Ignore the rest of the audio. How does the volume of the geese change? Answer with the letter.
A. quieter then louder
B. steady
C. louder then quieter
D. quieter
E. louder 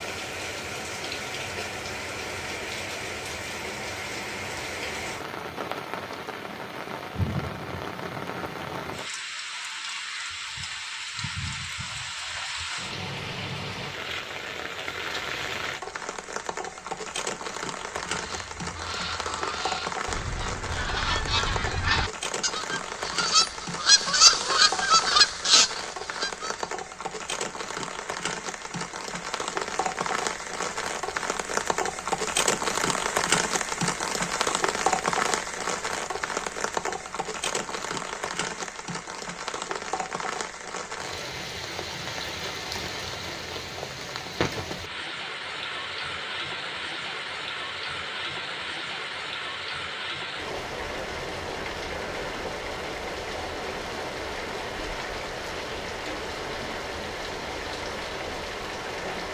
E.